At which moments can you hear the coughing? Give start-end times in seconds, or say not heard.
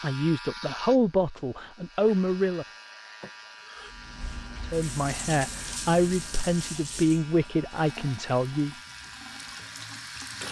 3.2-4.0.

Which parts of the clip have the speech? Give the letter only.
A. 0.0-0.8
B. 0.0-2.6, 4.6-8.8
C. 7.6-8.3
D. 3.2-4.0
B.